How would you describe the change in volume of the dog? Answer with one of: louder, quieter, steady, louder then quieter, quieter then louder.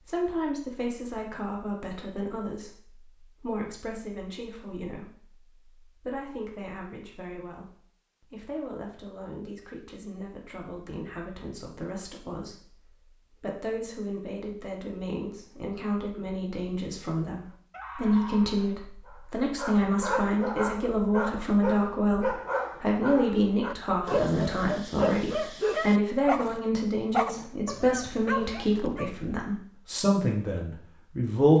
louder.